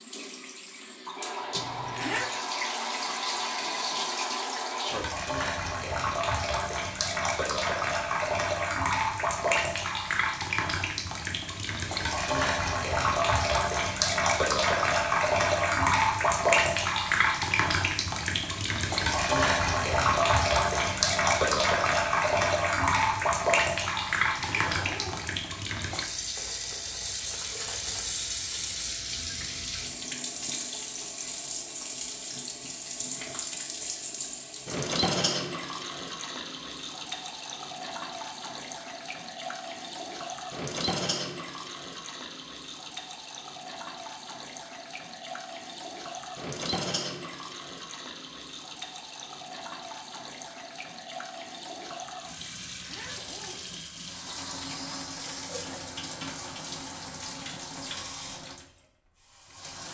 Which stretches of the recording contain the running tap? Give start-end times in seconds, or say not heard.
0.0-59.8.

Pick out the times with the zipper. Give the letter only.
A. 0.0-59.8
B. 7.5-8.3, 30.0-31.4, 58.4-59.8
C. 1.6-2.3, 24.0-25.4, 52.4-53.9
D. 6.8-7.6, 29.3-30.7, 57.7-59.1
C.